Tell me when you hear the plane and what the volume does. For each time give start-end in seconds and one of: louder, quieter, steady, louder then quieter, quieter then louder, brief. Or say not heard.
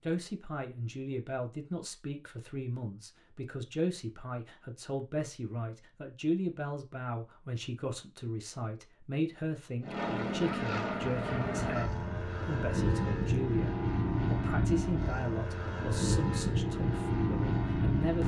9.8-18.2 steady.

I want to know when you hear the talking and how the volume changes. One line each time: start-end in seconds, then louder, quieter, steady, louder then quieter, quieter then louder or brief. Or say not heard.
0.0-18.2 steady.